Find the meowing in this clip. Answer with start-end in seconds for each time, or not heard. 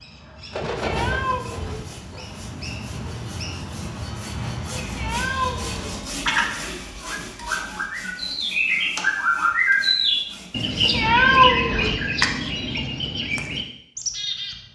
0.8-1.9, 5.0-6.0, 10.9-11.9.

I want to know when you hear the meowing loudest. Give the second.
11 s.